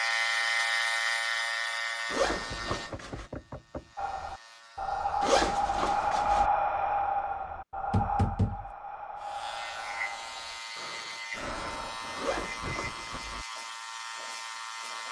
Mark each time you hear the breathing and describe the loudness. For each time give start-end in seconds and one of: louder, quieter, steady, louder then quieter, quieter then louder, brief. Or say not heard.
4.0-13.2 quieter.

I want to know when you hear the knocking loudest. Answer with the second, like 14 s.
8 s.